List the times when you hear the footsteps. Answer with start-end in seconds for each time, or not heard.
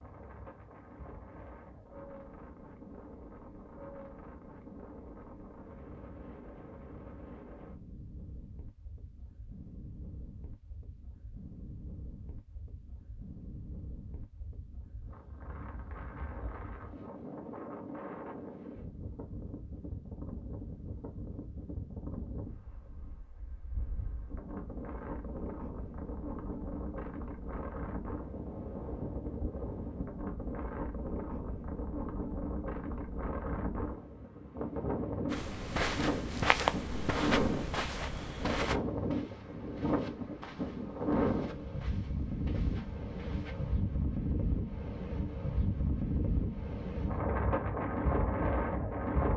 35.3-43.8.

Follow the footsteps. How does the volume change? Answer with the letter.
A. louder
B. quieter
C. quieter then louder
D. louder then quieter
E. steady
B.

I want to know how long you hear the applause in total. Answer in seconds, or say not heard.
not heard.